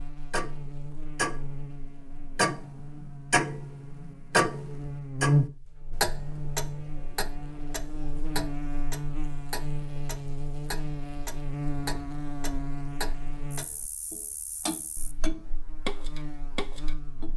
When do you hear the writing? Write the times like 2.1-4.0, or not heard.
not heard.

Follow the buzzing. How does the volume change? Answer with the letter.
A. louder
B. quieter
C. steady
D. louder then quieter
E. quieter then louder
D.